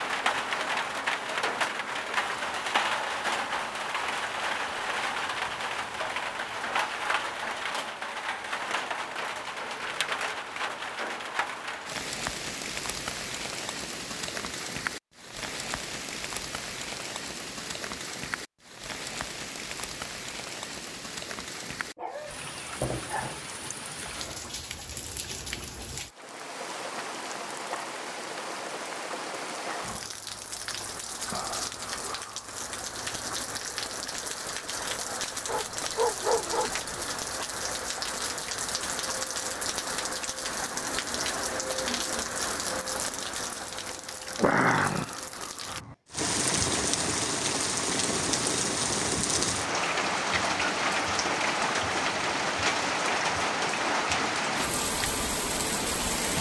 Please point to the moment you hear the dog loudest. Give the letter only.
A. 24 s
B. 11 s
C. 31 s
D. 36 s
D.